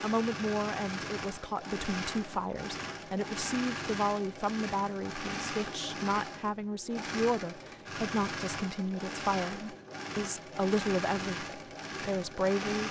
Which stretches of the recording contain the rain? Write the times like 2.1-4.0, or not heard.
not heard.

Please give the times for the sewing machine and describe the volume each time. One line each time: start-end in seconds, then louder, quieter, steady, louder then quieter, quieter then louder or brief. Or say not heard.
0.0-12.8 steady.